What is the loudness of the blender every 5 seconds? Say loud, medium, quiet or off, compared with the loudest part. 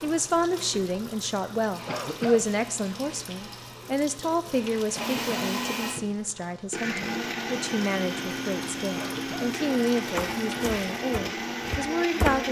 quiet, loud, loud.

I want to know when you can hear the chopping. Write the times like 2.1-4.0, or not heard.
10.2-12.4.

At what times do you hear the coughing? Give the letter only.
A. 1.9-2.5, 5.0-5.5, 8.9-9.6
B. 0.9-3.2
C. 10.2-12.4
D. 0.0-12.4
A.